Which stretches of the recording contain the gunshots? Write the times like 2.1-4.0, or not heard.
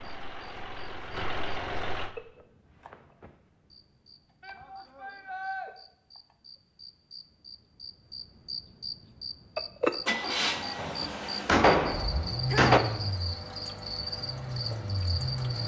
10.8-12.8.